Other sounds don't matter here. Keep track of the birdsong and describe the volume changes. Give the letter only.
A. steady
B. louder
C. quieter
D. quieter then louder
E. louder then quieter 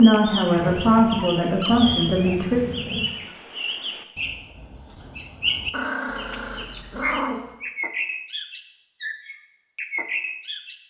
A.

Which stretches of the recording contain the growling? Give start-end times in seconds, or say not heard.
0.6-3.2, 5.7-7.5.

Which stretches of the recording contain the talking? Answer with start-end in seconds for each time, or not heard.
0.0-2.6.